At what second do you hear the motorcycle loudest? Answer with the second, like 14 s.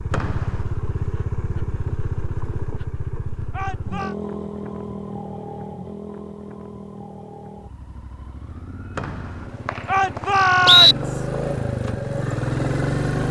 13 s.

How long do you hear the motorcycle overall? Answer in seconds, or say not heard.
13 s.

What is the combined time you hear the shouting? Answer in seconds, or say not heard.
2 s.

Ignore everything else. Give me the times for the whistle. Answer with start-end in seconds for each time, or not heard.
0.1-0.6, 8.9-10.9.